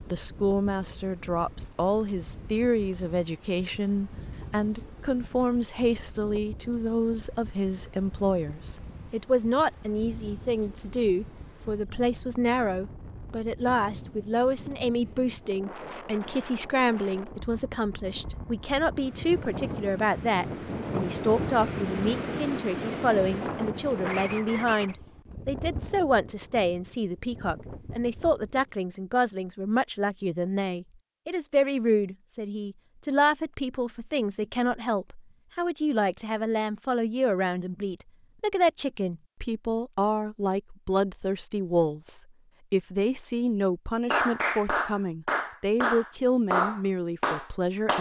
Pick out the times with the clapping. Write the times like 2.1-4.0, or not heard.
44.1-47.9.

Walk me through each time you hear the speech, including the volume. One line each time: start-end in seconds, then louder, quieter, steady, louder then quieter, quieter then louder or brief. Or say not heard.
0.1-47.9 steady.